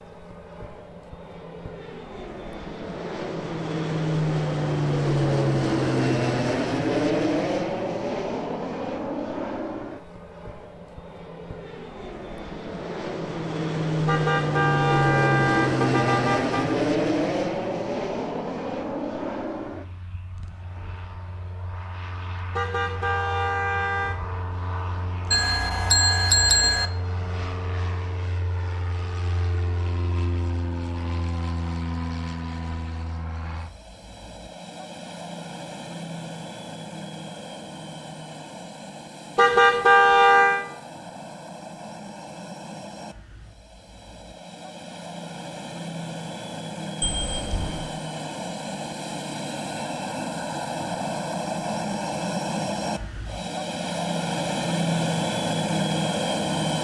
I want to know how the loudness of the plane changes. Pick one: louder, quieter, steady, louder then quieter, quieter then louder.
quieter then louder.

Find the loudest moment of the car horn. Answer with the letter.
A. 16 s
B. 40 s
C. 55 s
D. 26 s
B.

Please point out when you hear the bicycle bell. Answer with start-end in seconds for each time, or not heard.
25.3-26.9, 47.0-47.9.